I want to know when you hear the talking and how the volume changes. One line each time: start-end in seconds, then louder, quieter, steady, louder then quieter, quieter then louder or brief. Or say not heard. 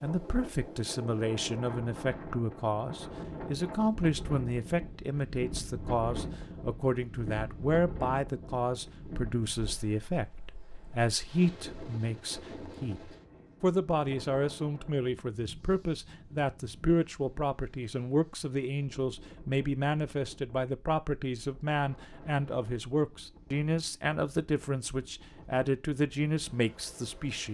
0.0-27.5 steady.